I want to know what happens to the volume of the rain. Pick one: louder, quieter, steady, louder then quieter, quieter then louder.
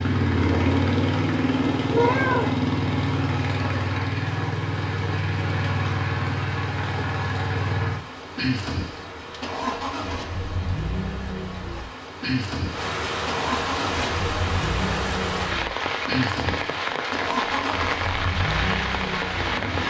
louder.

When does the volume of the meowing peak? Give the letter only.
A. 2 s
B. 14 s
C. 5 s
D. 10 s
A.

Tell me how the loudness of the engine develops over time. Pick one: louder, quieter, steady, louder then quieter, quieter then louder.
quieter.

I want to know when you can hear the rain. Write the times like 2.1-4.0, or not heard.
0.0-19.8.